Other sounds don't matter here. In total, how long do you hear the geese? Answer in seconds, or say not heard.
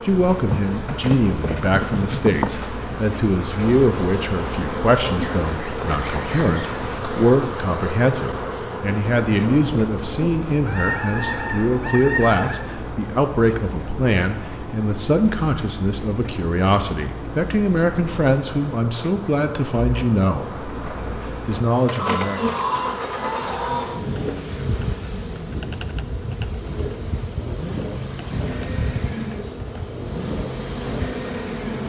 6 s.